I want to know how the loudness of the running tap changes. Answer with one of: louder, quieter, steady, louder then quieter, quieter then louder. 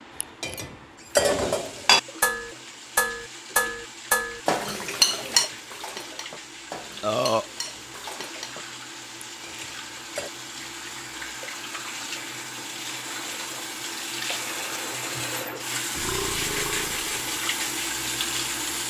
louder.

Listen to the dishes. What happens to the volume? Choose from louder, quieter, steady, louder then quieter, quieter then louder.
quieter.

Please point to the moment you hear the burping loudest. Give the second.
7 s.